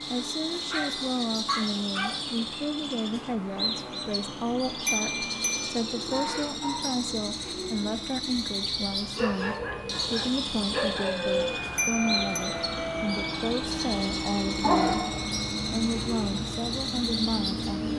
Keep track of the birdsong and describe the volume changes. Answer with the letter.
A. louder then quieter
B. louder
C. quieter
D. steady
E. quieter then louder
D.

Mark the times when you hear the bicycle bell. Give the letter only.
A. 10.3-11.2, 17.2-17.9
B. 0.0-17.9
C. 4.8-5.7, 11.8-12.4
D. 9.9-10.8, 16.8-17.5
C.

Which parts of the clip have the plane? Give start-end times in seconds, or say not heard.
0.0-17.9.